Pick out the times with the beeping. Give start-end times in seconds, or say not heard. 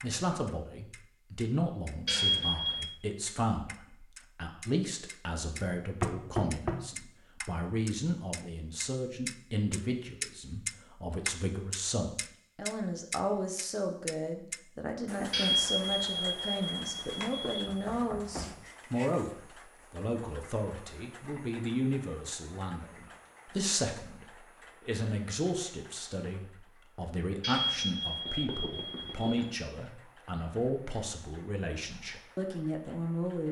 2.0-2.9, 15.3-17.7, 27.4-29.4.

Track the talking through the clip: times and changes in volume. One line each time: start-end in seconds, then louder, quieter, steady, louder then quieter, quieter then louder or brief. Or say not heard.
0.0-33.4 steady.